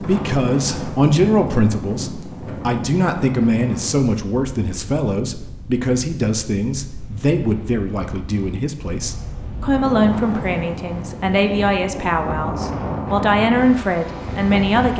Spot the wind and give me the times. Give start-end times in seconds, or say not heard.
0.0-14.9.